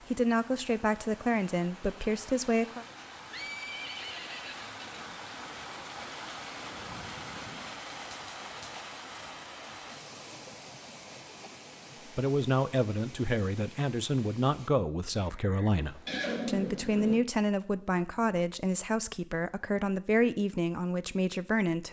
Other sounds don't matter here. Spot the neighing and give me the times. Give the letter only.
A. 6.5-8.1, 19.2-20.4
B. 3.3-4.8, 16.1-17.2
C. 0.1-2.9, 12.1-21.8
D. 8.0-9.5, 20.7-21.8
B.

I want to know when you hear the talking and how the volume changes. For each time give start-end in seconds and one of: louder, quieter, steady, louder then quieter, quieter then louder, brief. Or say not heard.
0.1-2.9 brief
12.1-21.8 steady.